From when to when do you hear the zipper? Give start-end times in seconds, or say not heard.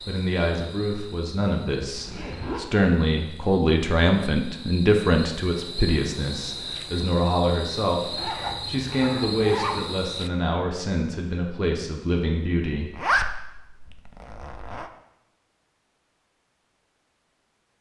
1.9-2.6, 8.2-9.8, 12.9-14.9.